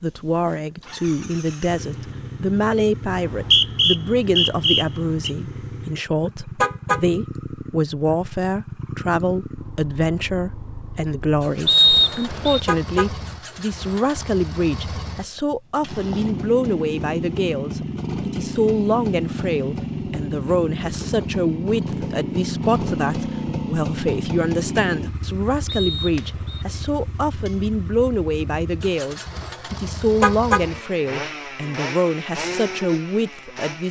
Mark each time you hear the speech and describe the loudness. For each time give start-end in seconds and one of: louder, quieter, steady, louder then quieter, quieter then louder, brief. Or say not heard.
0.0-33.8 steady.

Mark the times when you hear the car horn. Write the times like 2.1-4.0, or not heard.
6.6-7.0, 12.7-13.1, 30.2-30.6.